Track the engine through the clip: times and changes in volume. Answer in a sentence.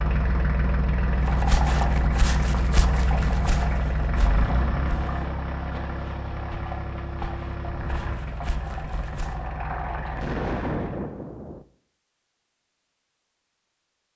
You can hear the engine from 0.0 to 11.1 s, getting quieter.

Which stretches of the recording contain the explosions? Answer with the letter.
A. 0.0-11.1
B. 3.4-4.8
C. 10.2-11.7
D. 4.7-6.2
C.